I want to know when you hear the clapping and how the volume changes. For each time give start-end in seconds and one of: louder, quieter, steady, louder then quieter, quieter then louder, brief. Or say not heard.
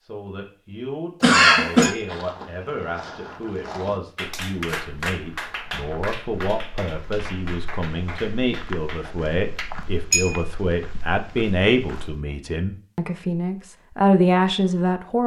4.2-9.8 quieter.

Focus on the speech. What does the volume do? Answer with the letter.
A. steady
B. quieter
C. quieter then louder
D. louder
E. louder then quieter
D.